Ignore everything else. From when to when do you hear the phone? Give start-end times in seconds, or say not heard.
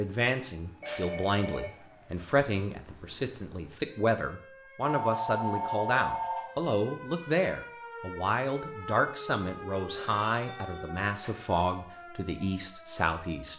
0.8-2.3, 4.8-6.5, 9.7-11.3.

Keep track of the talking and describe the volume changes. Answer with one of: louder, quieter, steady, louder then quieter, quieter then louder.
steady.